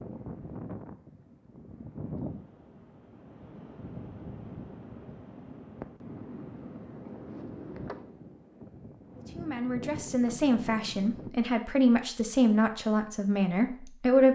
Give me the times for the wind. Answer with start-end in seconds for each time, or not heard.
0.0-11.3.